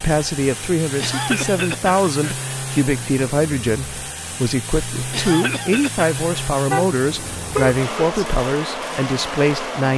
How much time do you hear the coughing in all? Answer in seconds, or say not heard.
3 s.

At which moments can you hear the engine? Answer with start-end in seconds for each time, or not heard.
0.0-9.9.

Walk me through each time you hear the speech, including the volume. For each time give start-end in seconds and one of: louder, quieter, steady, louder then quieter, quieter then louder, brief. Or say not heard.
0.0-9.9 steady.